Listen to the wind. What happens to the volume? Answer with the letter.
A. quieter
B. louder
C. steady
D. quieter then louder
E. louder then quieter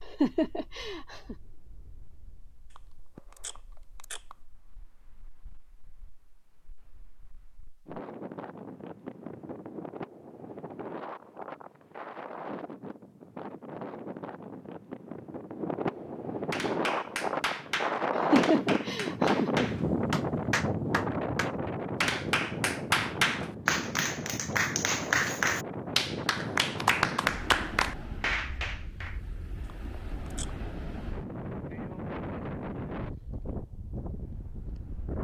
E.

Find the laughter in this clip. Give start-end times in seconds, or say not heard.
0.1-1.4, 18.1-19.7.